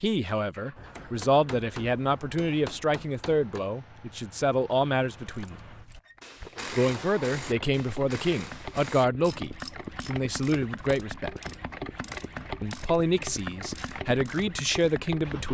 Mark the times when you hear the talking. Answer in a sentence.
The talking can be heard from 0.0 to 5.6 s, from 6.8 to 11.3 s and from 12.6 to 15.4 s.